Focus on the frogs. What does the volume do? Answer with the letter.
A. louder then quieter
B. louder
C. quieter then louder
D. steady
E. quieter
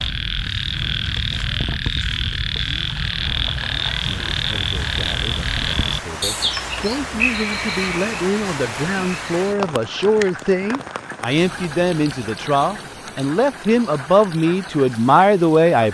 E.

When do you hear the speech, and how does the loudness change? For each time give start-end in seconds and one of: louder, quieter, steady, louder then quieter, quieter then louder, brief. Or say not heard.
4.0-15.8 louder.